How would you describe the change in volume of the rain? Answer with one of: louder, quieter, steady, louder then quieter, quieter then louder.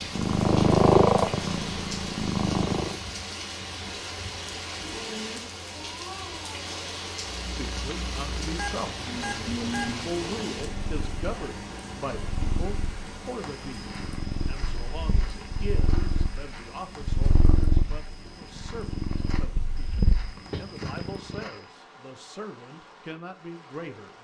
quieter.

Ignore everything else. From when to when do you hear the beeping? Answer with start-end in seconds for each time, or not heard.
8.6-9.8.